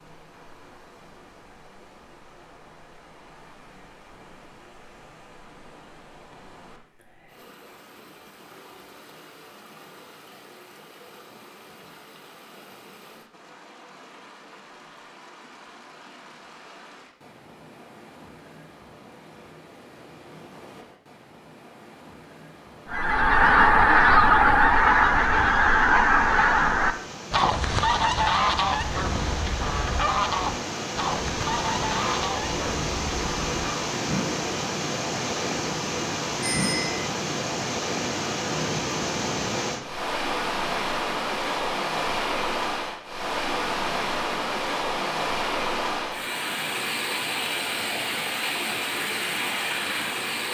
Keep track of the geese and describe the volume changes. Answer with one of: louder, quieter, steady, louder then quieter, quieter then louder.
quieter.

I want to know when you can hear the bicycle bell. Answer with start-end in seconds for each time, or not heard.
36.4-37.0.